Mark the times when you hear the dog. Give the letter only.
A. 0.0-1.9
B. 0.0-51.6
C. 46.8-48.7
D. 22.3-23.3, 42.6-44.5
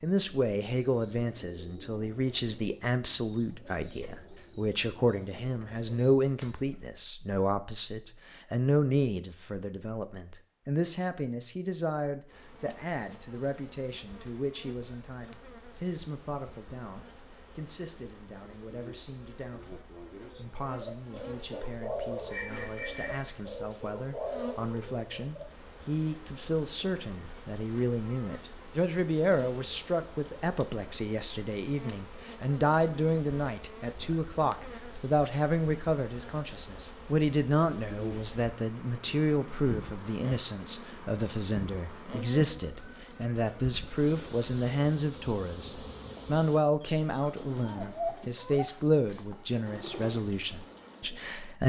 C.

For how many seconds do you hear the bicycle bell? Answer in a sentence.
You can hear the bicycle bell for 3 seconds altogether.